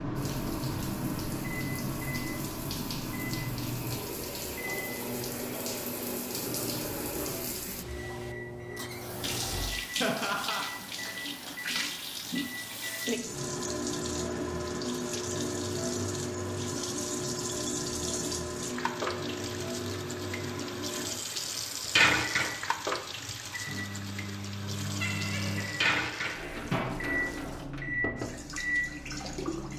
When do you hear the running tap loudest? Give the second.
22 s.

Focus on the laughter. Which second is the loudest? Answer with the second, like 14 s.
10 s.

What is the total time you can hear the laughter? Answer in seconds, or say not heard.
2 s.